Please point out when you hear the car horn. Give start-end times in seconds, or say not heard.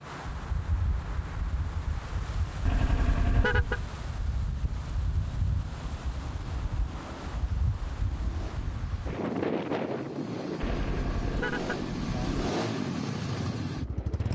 2.6-3.8, 10.6-12.5.